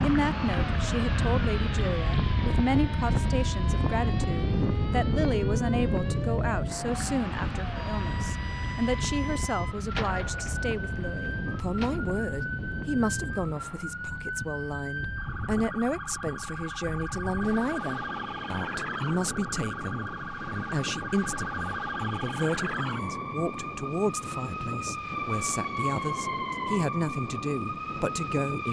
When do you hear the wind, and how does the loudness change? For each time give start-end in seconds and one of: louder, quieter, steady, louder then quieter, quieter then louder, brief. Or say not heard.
0.0-28.6 quieter.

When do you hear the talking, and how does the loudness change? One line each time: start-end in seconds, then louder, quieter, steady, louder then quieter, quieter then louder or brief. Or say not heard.
0.0-28.6 steady.